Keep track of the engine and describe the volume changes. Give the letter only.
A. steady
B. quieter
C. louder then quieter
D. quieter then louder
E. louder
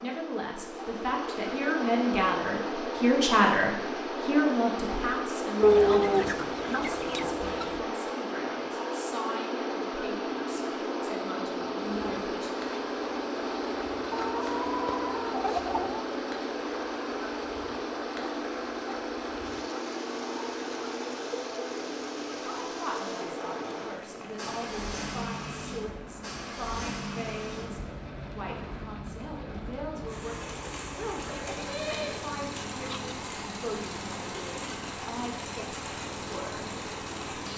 B.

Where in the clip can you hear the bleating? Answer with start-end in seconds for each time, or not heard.
31.1-32.2.